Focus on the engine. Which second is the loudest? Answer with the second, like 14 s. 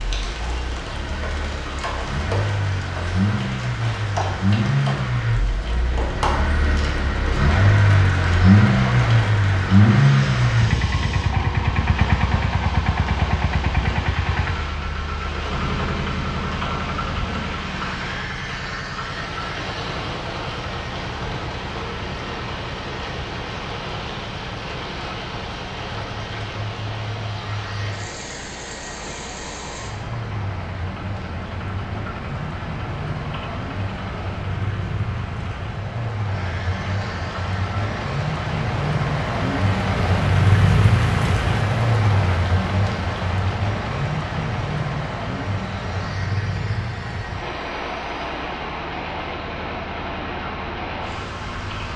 10 s.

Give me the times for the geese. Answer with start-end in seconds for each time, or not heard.
not heard.